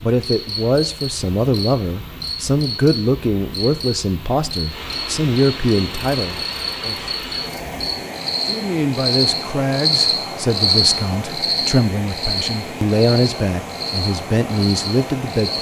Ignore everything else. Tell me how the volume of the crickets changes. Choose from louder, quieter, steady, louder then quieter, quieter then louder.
louder then quieter.